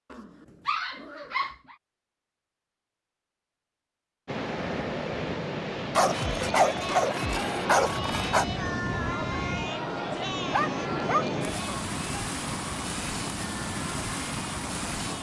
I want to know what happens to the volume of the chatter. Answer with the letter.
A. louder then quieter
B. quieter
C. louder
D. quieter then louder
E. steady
B.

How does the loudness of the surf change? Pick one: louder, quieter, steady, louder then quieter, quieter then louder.
steady.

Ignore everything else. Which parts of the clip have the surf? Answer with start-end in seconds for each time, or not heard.
4.2-15.1.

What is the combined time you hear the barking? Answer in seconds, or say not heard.
5 s.